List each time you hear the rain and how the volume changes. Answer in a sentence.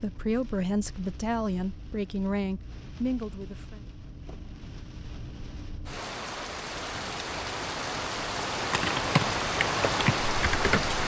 You can hear the rain from 0.0 to 11.0 s, getting louder.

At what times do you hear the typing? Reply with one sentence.
The typing can be heard from 8.7 to 11.0 s.